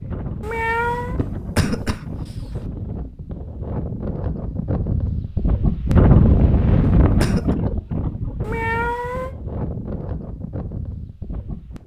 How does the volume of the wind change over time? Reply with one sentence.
The volume of the wind goes up, then down.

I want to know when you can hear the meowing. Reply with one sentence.
The meowing can be heard from 0.4 to 1.2 s and from 8.4 to 9.3 s.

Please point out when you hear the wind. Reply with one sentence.
You can hear the wind from 0.0 to 11.8 s.